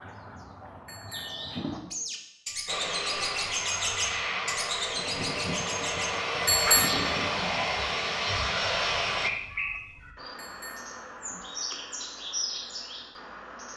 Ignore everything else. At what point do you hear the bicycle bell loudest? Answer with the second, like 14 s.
7 s.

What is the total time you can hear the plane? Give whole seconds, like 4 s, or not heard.
7 s.